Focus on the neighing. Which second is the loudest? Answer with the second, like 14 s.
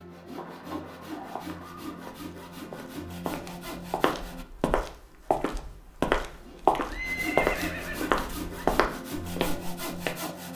7 s.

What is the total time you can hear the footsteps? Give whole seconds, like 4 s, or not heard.
9 s.